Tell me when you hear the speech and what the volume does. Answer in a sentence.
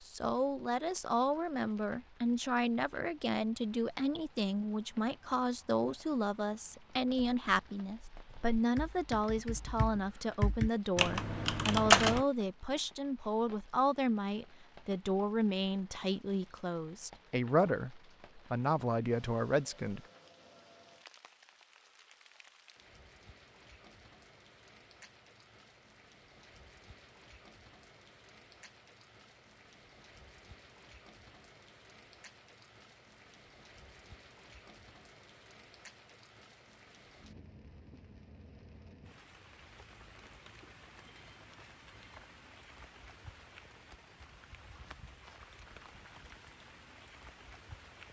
You can hear the speech from 0.1 to 20.1 s, at a steady volume.